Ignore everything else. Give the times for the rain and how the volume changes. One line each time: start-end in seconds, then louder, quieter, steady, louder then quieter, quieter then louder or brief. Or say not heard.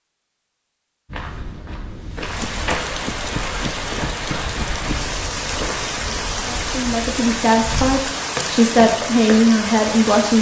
2.1-10.3 steady.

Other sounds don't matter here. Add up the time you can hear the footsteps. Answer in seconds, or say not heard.
8 s.